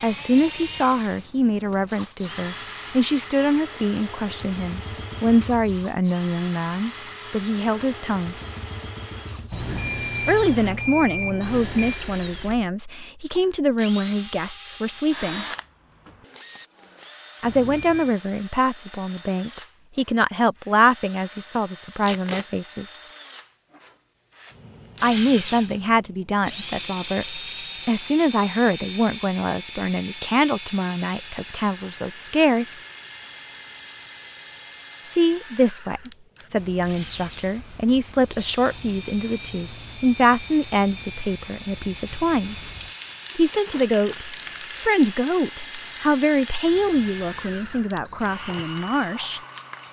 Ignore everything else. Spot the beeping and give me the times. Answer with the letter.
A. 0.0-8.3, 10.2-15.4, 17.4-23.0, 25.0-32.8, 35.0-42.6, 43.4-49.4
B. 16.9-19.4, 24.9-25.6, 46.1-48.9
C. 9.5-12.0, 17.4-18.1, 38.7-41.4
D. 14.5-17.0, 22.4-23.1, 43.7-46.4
C.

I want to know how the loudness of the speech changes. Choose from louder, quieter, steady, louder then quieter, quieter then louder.
steady.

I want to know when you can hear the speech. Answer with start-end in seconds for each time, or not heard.
0.0-8.3, 10.2-15.4, 17.4-23.0, 25.0-32.8, 35.0-42.6, 43.4-49.4.